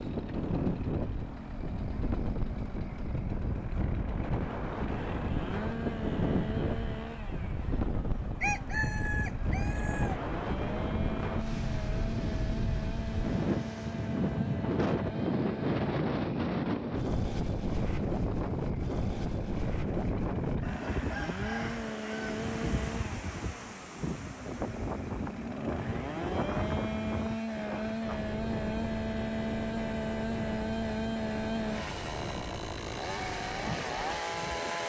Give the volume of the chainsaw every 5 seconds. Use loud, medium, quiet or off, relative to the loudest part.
medium, medium, medium, medium, medium, loud, loud.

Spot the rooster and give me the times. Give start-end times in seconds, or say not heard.
7.6-10.3, 20.6-22.4.